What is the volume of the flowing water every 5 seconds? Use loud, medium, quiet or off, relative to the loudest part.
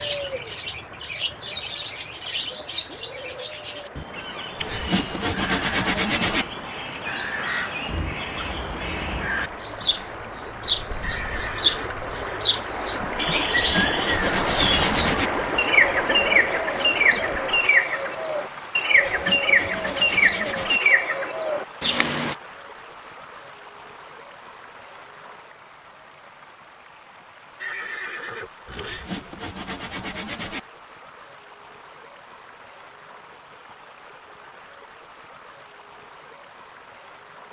quiet, medium, loud, loud, quiet, quiet, quiet, quiet.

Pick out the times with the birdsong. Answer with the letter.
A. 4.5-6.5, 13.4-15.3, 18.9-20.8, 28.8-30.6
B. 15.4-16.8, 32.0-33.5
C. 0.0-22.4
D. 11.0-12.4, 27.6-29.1
C.